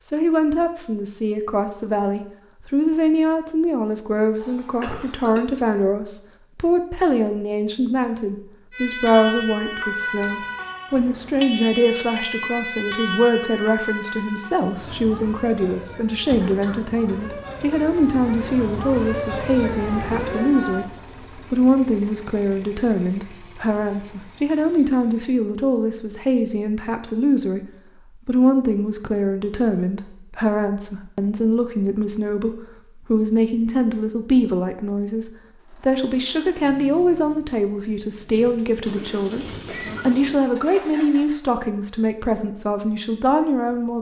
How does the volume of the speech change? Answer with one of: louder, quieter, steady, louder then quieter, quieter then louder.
steady.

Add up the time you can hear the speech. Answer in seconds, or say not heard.
44 s.